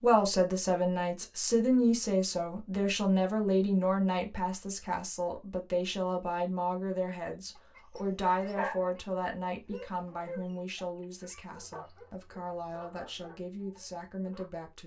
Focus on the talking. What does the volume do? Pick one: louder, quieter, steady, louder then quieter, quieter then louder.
quieter.